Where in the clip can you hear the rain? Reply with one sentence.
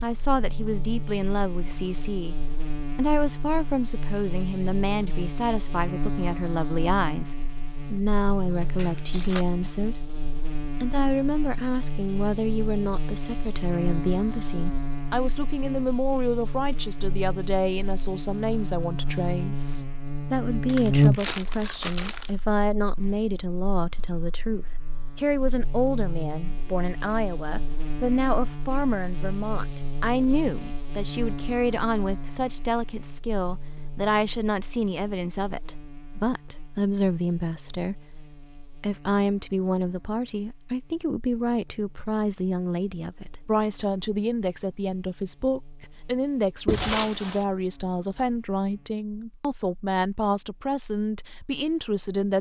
The rain can't be heard in this clip.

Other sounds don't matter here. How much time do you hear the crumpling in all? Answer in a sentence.
The crumpling can be heard for 3 seconds in total.